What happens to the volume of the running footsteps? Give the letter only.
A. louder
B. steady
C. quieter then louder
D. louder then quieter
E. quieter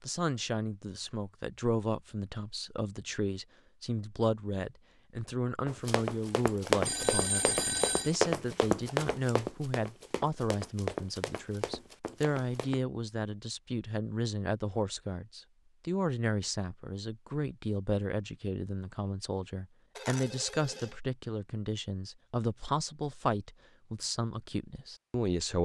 E.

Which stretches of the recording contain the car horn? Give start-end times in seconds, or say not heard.
not heard.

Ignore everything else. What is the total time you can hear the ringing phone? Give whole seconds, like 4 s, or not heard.
2 s.